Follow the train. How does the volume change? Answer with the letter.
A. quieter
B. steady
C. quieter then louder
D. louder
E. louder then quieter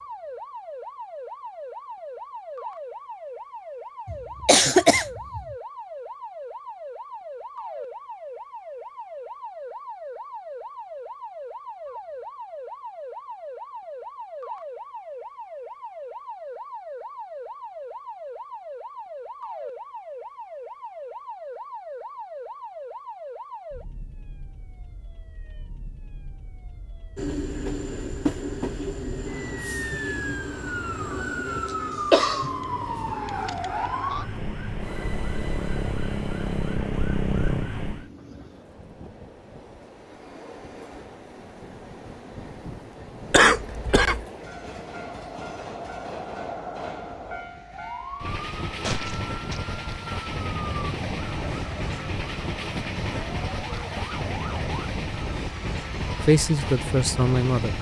C.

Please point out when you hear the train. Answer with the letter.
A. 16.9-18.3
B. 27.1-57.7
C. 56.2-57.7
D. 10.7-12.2
B.